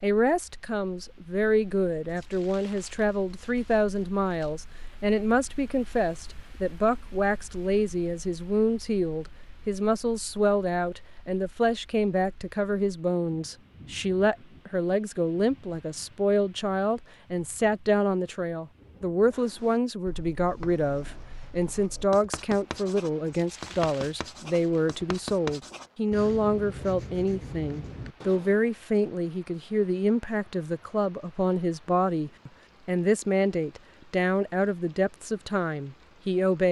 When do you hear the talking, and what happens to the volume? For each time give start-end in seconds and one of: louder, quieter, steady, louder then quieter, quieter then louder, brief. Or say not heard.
0.0-36.6 steady.